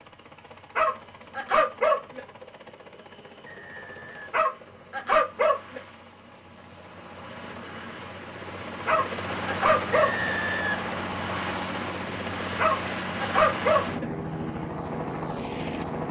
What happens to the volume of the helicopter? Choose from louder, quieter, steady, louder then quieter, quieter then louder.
louder.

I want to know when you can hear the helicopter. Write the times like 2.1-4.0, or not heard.
0.0-16.0.